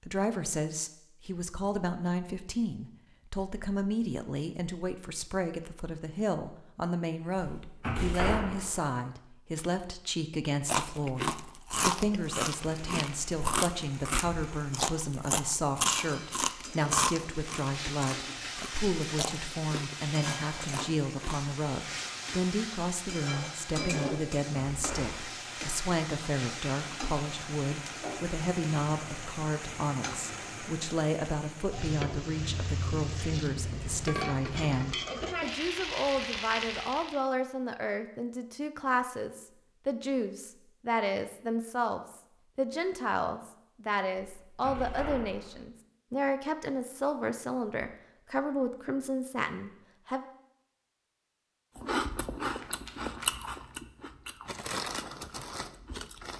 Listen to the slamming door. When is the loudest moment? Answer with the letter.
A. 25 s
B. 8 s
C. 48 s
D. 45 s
B.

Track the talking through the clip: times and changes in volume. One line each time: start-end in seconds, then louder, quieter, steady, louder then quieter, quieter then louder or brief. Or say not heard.
0.0-50.2 steady.